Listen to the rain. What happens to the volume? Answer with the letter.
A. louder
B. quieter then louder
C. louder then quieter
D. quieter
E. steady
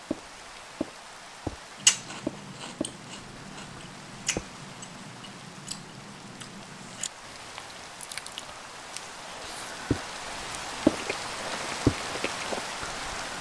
B.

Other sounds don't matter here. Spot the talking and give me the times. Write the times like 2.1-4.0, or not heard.
not heard.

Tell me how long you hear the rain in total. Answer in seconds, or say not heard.
13 s.